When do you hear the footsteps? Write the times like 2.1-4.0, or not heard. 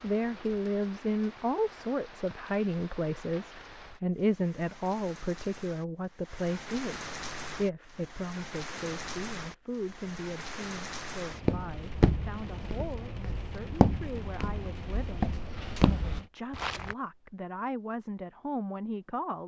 11.4-16.9.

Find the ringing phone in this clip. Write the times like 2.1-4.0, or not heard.
not heard.